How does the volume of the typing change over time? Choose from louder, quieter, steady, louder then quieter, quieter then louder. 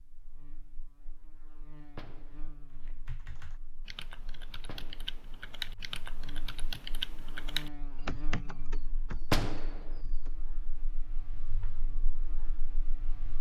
louder.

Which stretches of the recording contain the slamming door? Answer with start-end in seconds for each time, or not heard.
1.9-2.5, 4.5-5.2, 9.2-9.9.